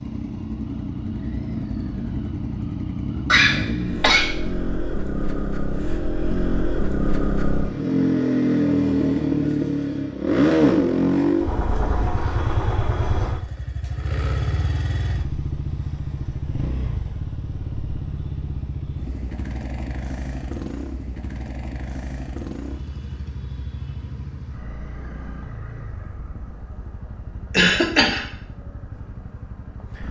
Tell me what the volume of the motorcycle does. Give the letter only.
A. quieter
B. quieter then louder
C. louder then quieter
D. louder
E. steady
C.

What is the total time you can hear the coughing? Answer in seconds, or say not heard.
2 s.